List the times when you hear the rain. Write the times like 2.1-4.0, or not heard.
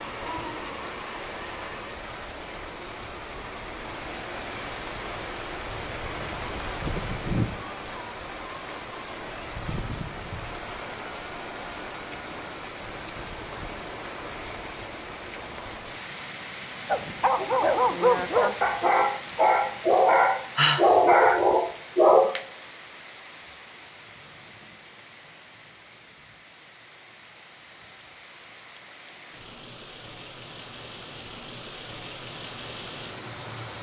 0.0-33.7.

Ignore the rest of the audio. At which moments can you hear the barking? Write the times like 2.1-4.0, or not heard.
16.9-22.4.